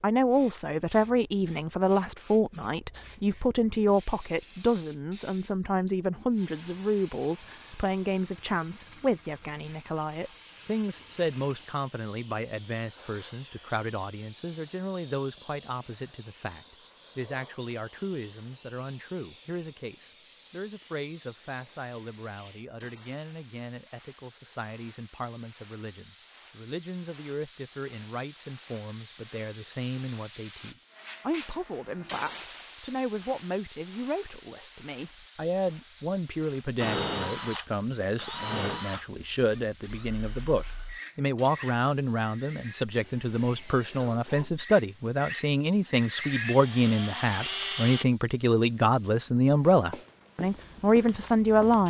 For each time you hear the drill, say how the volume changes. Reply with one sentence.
You can hear the drill from 36.8 to 48.0 s, getting quieter then louder.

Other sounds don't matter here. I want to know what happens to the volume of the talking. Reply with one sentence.
The loudness of the talking goes down, then up.